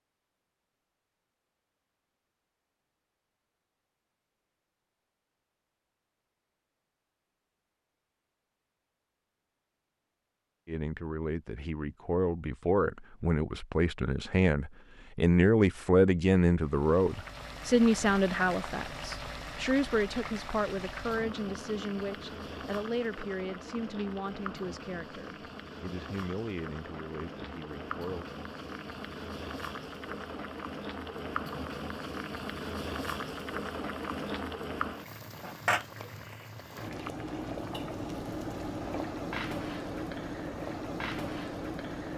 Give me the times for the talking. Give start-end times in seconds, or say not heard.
10.7-28.2.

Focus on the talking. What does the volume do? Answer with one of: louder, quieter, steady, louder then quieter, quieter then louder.
louder then quieter.